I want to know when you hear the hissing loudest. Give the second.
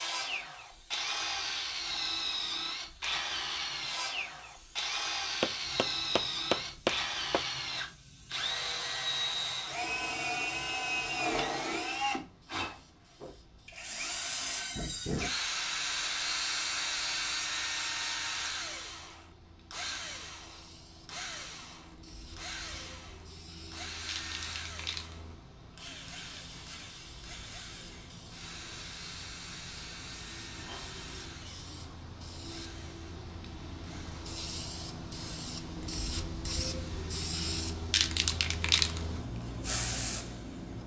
38 s.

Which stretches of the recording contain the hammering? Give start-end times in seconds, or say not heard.
5.4-7.4.